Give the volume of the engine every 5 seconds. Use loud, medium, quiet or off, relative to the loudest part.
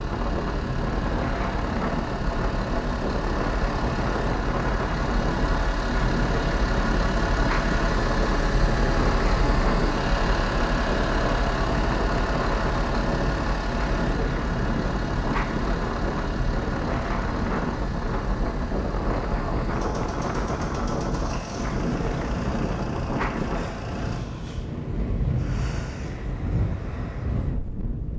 medium, loud, loud, medium, medium, off.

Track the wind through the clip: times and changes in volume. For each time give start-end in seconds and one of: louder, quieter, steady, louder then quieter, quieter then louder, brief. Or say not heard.
0.0-28.1 steady.